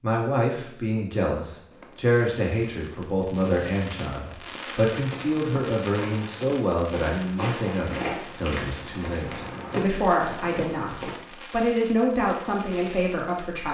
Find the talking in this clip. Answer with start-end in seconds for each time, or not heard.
0.0-13.6.